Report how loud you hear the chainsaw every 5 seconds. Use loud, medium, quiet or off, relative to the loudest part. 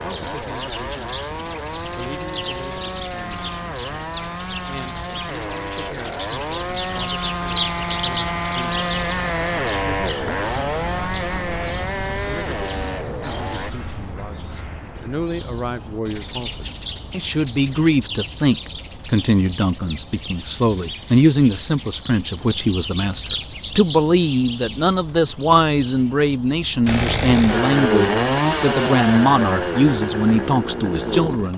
medium, medium, medium, off, off, loud, medium.